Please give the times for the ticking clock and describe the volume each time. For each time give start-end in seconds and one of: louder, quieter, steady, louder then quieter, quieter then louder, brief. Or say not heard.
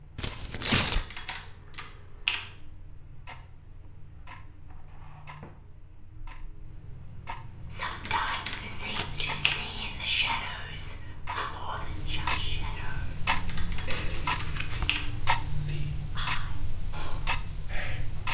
0.0-18.2 louder.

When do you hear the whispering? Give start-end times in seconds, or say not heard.
7.7-18.0.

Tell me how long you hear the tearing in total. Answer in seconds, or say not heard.
3 s.